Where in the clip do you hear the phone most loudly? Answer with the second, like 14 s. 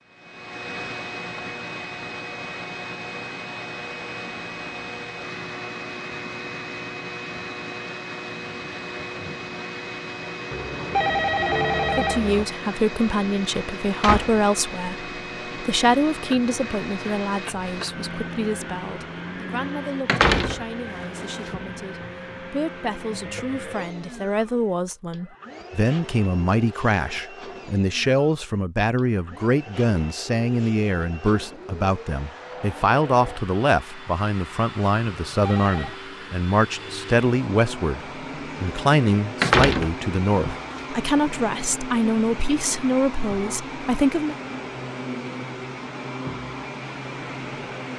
11 s.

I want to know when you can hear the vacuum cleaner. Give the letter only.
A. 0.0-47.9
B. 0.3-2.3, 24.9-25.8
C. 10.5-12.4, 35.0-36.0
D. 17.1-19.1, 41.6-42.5
A.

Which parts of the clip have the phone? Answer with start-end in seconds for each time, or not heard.
10.5-12.4, 35.0-36.0.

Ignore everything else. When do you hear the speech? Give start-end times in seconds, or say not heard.
11.9-44.4.